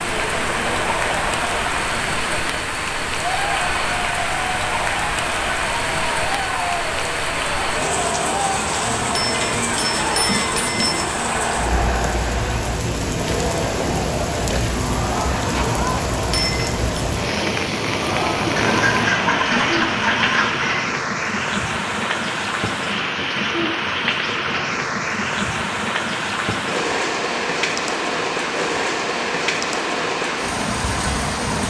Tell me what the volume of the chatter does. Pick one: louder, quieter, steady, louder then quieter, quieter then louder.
steady.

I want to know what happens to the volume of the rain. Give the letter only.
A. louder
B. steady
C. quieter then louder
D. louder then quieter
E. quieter
B.